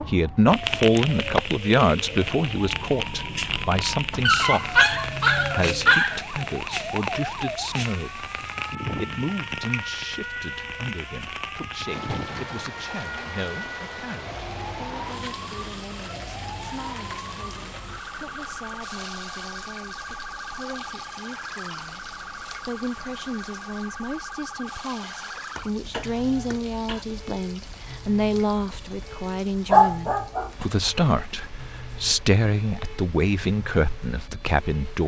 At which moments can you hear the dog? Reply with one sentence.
The dog can be heard from 4.2 to 6.2 s and from 29.7 to 30.6 s.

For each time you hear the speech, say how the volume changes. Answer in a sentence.
You can hear the speech from 0.0 to 35.0 s, getting quieter then louder.